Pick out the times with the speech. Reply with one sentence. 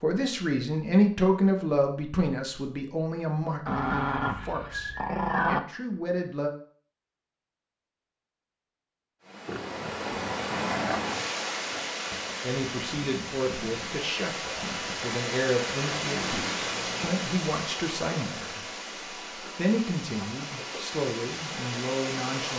You can hear the speech from 0.0 to 6.5 s, from 12.4 to 18.6 s and from 19.6 to 22.5 s.